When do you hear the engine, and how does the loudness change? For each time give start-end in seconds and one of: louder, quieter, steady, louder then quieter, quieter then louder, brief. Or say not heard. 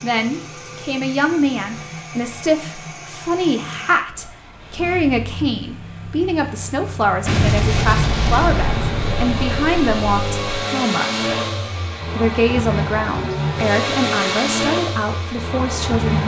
0.0-16.2 louder.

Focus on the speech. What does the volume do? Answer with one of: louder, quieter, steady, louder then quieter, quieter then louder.
steady.